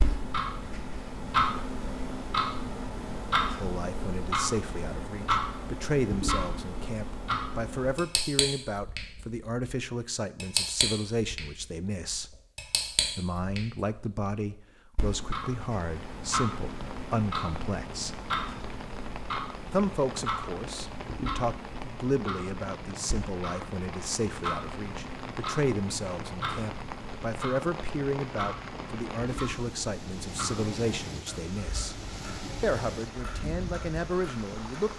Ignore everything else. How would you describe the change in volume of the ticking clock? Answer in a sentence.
The loudness of the ticking clock goes down.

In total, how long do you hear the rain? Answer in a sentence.
You can hear the rain for 19 seconds altogether.